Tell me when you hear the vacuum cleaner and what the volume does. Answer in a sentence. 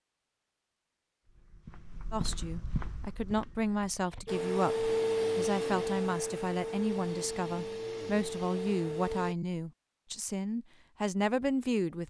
The vacuum cleaner can be heard from 4.2 to 9.3 s, getting quieter.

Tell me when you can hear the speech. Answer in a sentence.
The speech can be heard from 2.1 to 12.0 s.